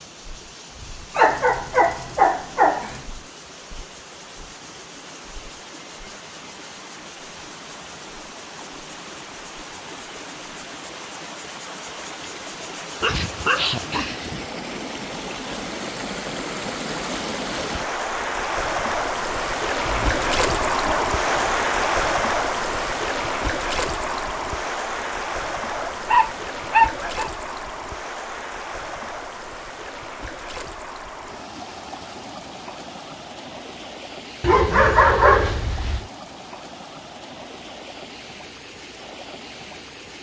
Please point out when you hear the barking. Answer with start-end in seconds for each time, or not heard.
1.1-3.0, 13.0-14.4, 19.9-21.9, 25.7-27.3, 34.4-36.0.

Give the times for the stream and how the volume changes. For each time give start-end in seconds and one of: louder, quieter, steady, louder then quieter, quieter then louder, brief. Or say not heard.
0.0-40.1 louder then quieter.